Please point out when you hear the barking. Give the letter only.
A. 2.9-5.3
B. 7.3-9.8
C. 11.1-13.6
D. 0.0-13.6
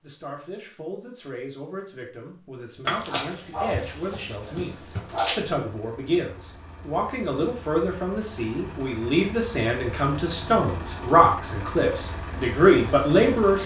A.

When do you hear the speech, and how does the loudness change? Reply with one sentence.
The speech can be heard from 0.0 to 13.6 s, getting louder.